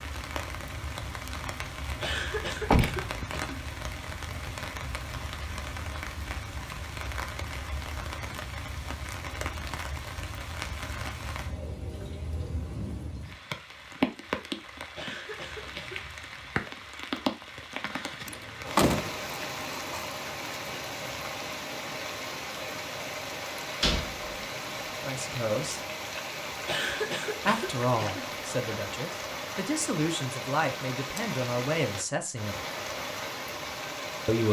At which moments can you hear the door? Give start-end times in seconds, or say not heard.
2.6-3.5, 18.2-20.1, 23.8-24.3.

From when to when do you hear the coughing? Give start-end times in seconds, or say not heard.
2.0-3.6, 14.9-16.1, 26.6-28.3.